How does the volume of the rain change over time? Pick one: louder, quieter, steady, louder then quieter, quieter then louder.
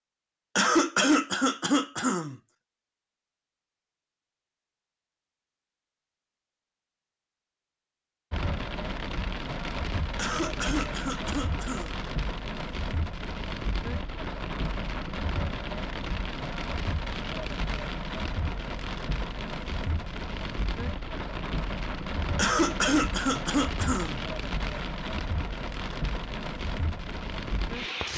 steady.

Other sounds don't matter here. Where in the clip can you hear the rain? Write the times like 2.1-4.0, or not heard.
8.3-28.1.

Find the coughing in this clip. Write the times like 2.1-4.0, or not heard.
0.6-2.4, 10.2-12.0, 22.4-24.2.